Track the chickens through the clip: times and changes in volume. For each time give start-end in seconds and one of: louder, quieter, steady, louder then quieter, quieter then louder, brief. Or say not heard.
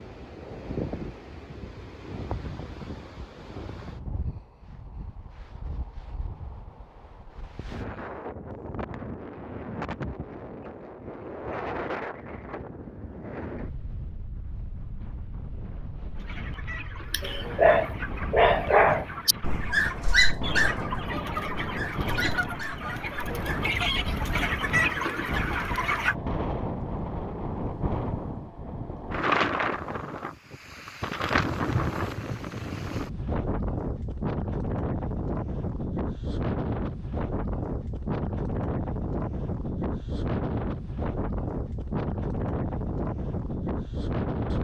16.1-26.1 louder.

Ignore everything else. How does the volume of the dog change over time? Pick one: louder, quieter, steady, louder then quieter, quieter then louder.
quieter.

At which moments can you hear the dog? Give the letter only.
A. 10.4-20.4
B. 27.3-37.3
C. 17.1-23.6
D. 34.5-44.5
C.